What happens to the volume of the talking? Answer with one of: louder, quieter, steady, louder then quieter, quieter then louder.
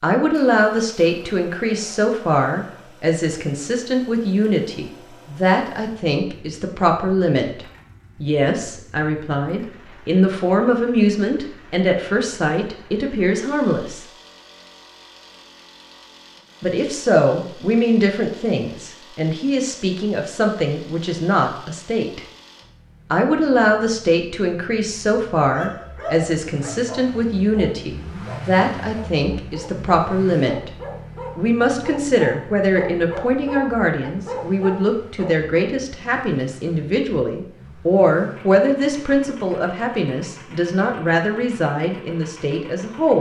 steady.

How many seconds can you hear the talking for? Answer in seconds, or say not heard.
39 s.